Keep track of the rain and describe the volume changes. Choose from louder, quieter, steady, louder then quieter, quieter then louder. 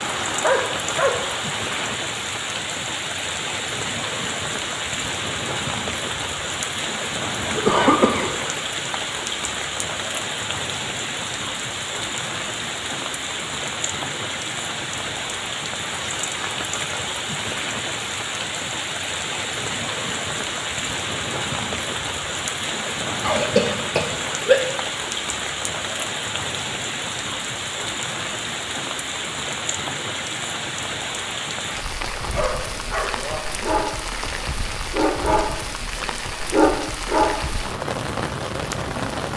steady.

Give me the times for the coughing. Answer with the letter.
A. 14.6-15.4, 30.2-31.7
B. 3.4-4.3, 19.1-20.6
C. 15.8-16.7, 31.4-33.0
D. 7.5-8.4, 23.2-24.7
D.